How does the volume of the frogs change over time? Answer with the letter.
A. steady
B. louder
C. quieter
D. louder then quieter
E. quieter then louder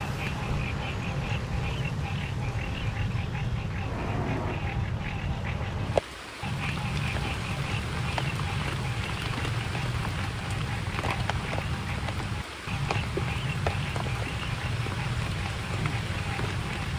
A.